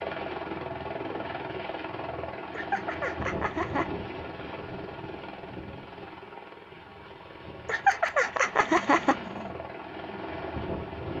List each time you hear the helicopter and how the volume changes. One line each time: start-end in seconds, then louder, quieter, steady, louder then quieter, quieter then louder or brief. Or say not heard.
0.0-11.1 quieter then louder.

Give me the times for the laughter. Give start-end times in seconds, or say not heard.
2.5-3.9, 7.7-9.5.